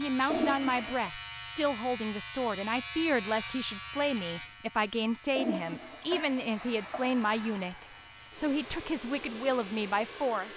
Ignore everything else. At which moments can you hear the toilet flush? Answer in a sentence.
You can hear the toilet flush from 0.3 to 1.1 s and from 5.3 to 7.2 s.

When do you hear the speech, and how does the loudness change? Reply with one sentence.
You can hear the speech from 0.0 to 10.5 s, at a steady volume.